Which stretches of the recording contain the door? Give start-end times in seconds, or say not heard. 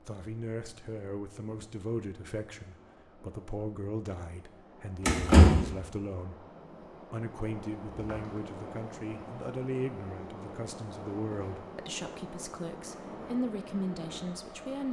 5.0-5.7, 7.9-8.4.